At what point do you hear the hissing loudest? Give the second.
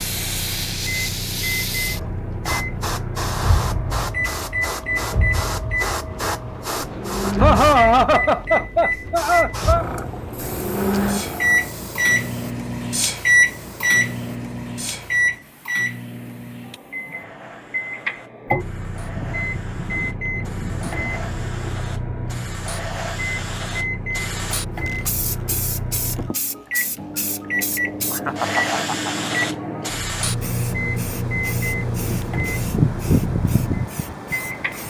33 s.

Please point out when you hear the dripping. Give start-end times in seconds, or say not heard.
not heard.